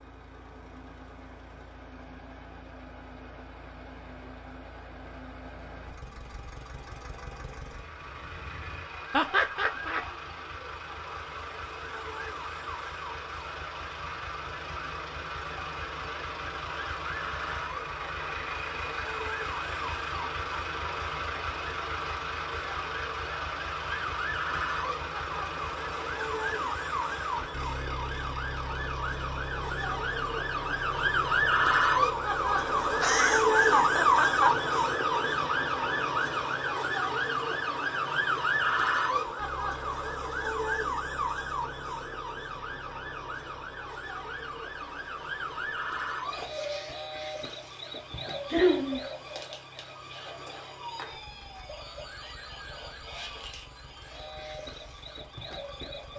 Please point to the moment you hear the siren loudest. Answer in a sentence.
The loudest moment of the siren is at 34 seconds.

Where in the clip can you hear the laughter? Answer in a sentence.
The laughter can be heard from 9.1 to 10.1 s, from 33.0 to 34.7 s and from 48.5 to 49.0 s.